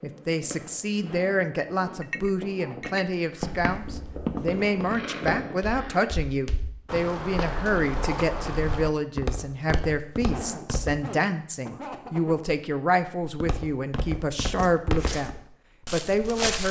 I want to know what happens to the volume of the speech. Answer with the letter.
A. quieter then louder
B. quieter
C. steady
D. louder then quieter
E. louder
C.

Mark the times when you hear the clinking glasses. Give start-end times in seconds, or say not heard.
2.0-3.0.